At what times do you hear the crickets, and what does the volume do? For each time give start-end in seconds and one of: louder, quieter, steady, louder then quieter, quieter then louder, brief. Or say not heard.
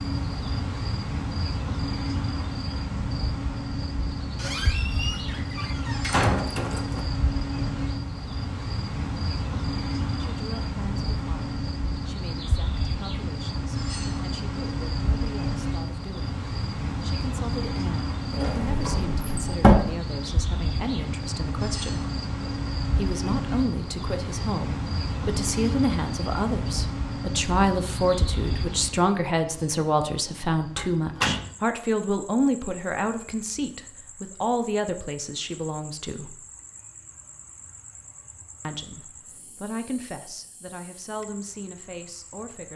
0.0-42.7 quieter.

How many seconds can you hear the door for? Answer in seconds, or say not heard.
5 s.